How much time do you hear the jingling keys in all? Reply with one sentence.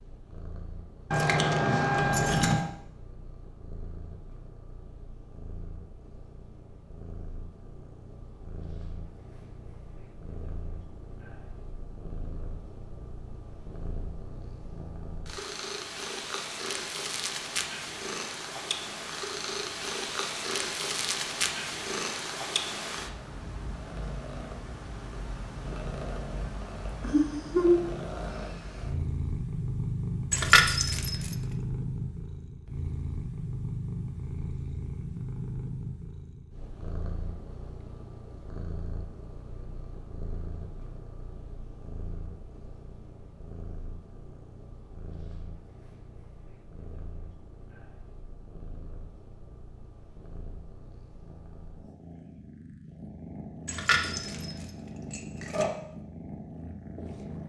You can hear the jingling keys for 5 seconds altogether.